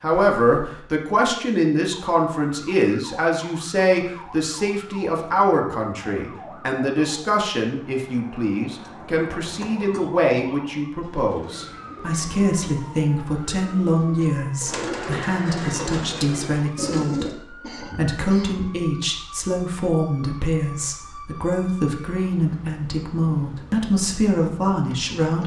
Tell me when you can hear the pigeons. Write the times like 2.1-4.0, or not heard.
10.8-17.4.